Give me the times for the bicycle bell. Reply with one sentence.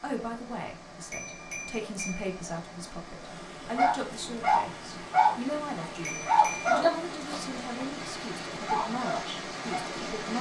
The bicycle bell can be heard from 1.1 to 2.2 s and from 6.0 to 6.7 s.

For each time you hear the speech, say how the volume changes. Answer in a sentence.
You can hear the speech from 0.0 to 10.3 s, at a steady volume.